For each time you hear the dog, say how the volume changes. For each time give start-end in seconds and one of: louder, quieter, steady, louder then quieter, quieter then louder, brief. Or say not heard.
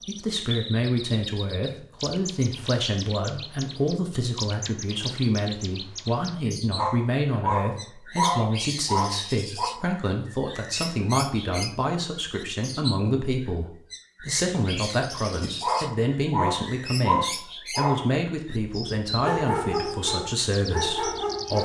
6.8-9.7 brief
15.6-21.6 quieter then louder.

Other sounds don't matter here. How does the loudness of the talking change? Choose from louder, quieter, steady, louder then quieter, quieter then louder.
steady.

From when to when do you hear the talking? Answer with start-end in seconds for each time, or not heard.
0.1-21.6.